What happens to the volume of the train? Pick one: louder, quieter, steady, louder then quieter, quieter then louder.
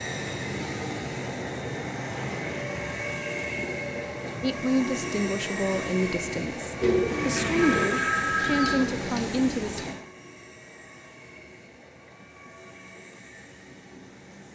quieter.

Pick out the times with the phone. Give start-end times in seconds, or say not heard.
7.5-8.8.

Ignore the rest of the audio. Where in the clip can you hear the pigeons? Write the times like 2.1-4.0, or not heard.
6.8-9.9.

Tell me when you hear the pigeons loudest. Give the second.
7 s.